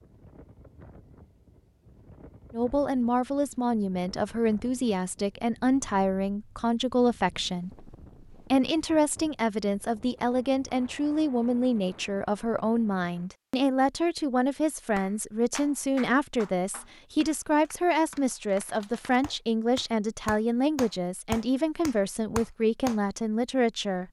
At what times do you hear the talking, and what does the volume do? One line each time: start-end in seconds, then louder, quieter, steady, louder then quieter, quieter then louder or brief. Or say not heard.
2.5-24.0 steady.